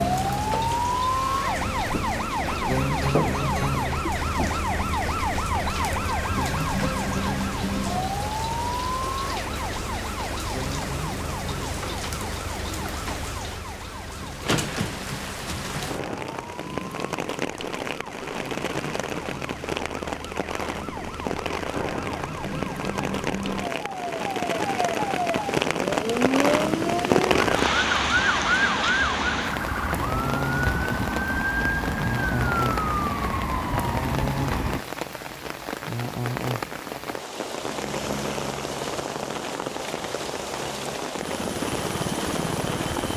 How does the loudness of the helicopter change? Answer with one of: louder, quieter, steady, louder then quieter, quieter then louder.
quieter then louder.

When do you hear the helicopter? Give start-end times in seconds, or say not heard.
37.6-43.1.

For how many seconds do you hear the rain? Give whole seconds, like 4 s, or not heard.
43 s.